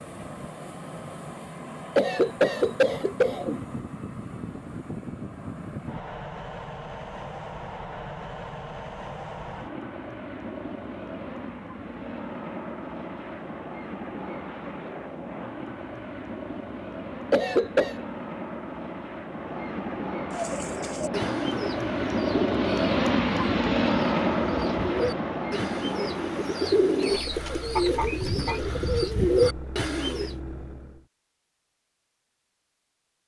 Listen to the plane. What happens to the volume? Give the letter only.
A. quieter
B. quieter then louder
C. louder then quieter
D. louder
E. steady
C.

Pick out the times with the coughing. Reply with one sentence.
The coughing can be heard from 1.9 to 3.6 s and from 17.3 to 18.0 s.